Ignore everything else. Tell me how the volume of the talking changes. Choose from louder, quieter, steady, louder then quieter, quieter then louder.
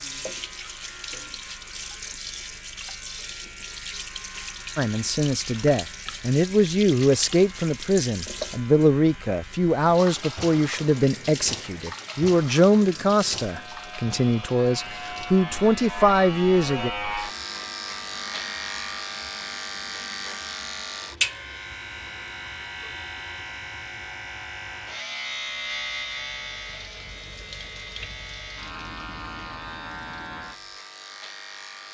steady.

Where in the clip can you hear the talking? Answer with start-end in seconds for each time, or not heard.
4.8-16.9.